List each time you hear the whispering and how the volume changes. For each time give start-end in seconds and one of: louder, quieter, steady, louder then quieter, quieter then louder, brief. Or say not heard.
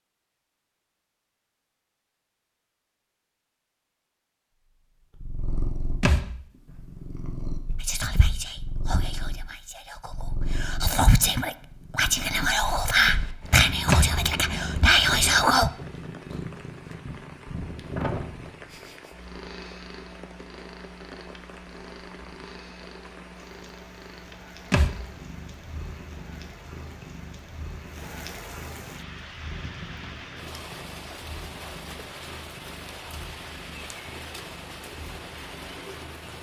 7.8-15.7 louder.